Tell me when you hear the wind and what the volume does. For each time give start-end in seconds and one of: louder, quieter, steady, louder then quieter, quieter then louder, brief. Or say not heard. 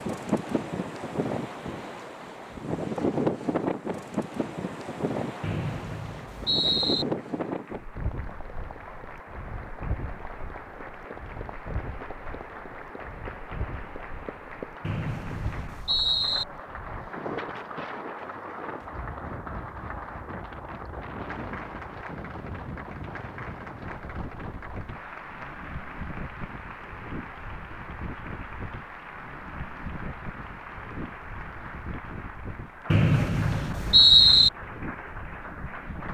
0.0-36.0 quieter.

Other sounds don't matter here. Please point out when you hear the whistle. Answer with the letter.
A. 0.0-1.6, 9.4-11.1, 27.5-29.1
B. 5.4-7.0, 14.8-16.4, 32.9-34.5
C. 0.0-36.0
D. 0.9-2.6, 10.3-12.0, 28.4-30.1
B.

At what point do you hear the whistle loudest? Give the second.
34 s.